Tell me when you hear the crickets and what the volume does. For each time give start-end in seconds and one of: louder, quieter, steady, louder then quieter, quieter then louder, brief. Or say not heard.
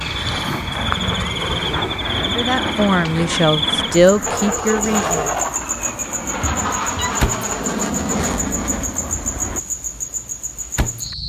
0.0-11.2 steady.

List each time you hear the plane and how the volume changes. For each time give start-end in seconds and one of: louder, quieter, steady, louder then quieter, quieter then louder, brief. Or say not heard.
0.0-9.6 steady.